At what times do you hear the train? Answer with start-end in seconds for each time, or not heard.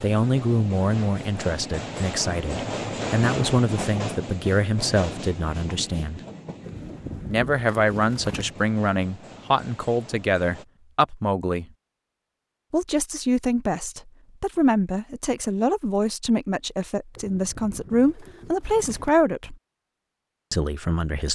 0.0-10.7.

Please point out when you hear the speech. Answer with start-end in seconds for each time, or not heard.
0.0-6.2, 7.2-11.7, 12.7-19.6, 20.5-21.2.